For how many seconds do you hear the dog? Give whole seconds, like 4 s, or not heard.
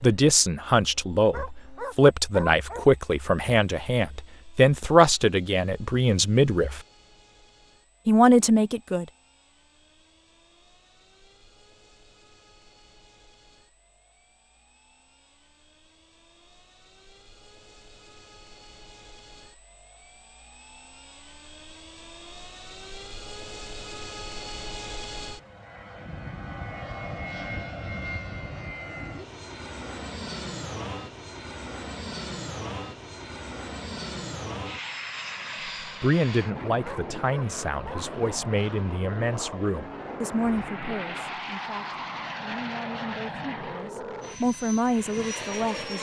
3 s.